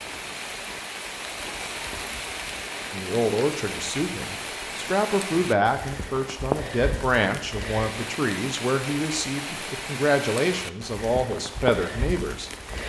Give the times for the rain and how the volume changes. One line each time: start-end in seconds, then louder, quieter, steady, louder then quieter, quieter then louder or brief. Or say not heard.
0.0-12.8 steady.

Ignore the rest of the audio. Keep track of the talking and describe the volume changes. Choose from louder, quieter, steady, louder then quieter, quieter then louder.
steady.